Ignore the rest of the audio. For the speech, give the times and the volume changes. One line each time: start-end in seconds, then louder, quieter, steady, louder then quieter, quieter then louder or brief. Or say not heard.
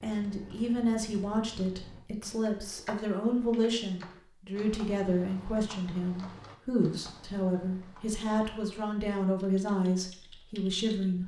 0.0-11.2 steady.